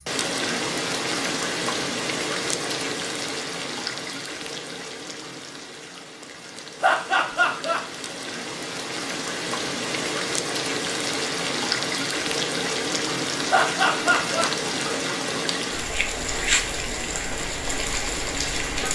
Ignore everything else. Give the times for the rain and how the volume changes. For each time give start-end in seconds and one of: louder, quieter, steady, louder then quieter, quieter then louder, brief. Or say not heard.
0.0-18.9 quieter then louder.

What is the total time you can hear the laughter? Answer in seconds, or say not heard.
2 s.